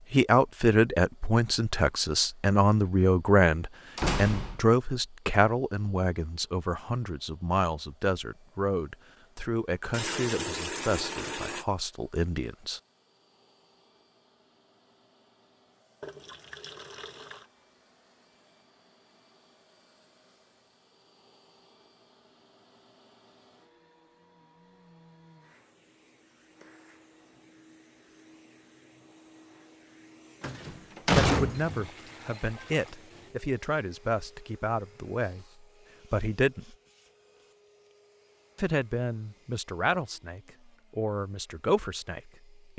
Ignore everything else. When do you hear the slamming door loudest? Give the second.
31 s.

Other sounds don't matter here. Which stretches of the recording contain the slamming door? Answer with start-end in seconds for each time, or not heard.
4.0-4.6, 30.4-31.9.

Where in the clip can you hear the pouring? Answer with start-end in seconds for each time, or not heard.
9.9-11.7, 16.0-17.5, 31.5-33.4.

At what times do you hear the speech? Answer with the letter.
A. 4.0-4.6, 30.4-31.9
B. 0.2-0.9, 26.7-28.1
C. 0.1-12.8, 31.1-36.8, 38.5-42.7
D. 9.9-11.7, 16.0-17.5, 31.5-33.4
C.